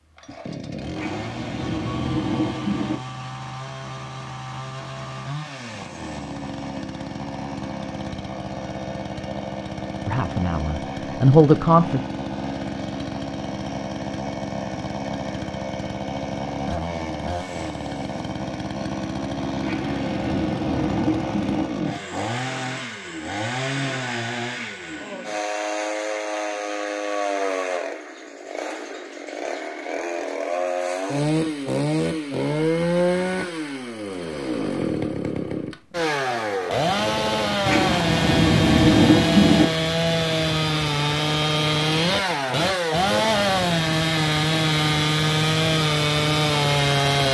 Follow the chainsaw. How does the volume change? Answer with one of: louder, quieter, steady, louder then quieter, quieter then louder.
louder.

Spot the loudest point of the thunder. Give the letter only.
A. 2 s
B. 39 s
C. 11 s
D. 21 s
B.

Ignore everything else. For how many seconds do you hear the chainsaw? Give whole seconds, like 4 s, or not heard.
47 s.